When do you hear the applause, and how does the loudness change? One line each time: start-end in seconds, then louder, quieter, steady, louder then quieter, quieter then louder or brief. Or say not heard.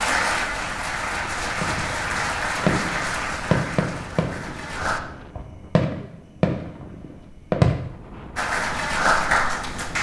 0.0-5.0 quieter
8.3-9.9 brief.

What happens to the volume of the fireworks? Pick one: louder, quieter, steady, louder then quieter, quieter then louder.
quieter then louder.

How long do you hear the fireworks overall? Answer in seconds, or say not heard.
6 s.